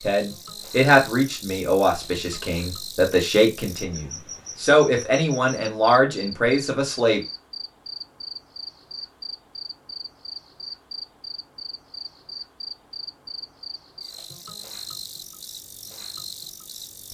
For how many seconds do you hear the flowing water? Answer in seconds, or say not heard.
not heard.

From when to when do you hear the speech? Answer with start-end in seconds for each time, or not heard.
0.0-7.2.